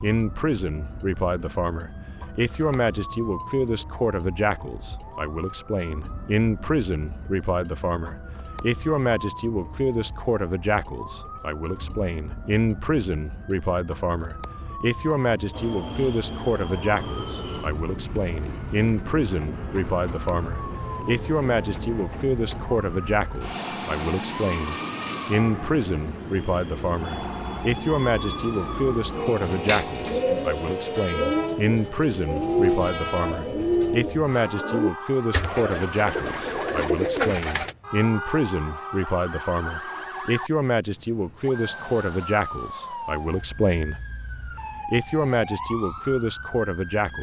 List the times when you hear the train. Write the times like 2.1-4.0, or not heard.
15.5-34.0.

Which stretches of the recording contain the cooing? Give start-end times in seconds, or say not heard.
29.1-37.8.